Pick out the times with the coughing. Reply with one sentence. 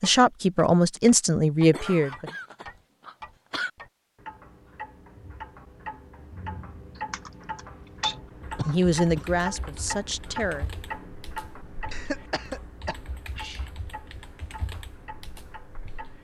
The coughing can be heard from 1.7 to 3.7 s, from 8.6 to 9.2 s and from 11.9 to 13.6 s.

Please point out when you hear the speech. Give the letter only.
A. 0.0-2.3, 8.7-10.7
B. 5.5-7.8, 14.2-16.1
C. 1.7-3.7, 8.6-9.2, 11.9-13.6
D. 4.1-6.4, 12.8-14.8
A.